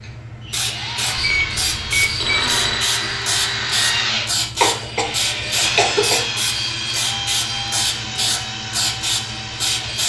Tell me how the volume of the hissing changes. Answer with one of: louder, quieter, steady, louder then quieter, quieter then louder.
steady.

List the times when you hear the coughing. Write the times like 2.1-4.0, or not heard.
4.6-6.2.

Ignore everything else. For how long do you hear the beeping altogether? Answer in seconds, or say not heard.
2 s.